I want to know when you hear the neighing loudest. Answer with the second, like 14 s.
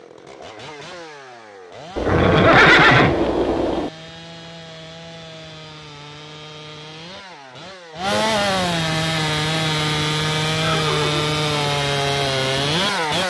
3 s.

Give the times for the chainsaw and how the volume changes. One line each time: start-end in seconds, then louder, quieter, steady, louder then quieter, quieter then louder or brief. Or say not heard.
0.0-13.2 louder.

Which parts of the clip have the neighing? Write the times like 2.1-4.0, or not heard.
1.9-3.9, 10.6-11.2.